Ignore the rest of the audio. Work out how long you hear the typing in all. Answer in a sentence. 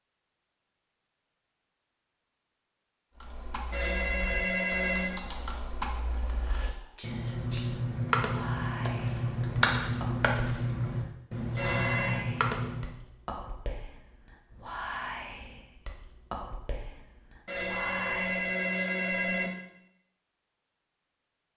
You can hear the typing for 10 seconds altogether.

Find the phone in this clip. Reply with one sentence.
The phone can be heard from 3.7 to 5.2 s, from 11.6 to 12.2 s and from 17.4 to 19.5 s.